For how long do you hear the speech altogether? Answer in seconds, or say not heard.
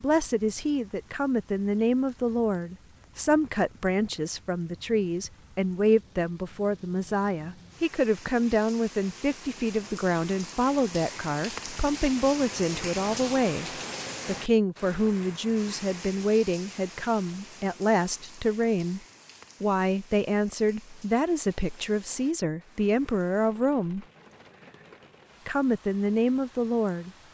25 s.